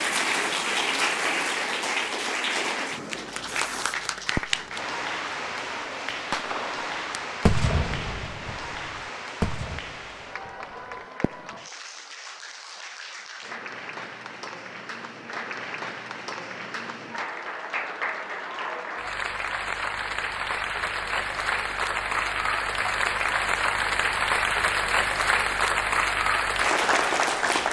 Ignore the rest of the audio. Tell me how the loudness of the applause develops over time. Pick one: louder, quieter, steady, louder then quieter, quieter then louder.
quieter then louder.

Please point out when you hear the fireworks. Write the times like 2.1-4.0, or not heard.
2.9-4.6, 6.1-11.7.